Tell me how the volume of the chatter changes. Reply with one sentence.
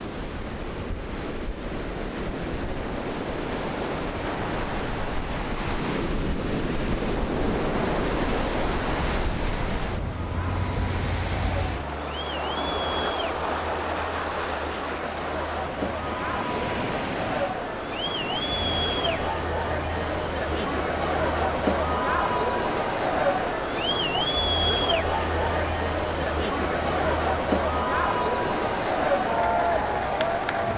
The volume of the chatter goes up.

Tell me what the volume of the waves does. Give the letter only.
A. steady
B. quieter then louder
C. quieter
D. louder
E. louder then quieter
C.